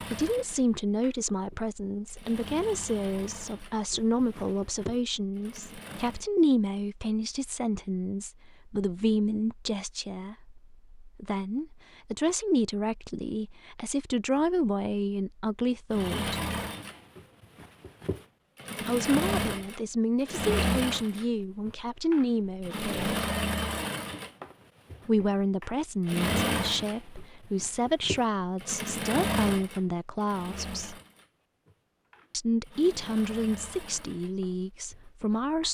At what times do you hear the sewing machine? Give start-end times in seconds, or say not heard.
0.0-6.2, 15.9-35.6.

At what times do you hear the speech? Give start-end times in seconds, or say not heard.
0.0-16.4, 18.9-23.1, 25.1-30.9, 32.3-35.6.